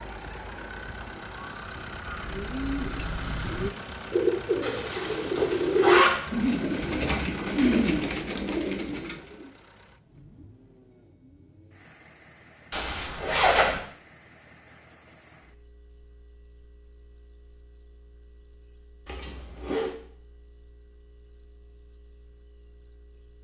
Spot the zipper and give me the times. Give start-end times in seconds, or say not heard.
4.6-6.2, 12.7-13.8, 19.1-19.9.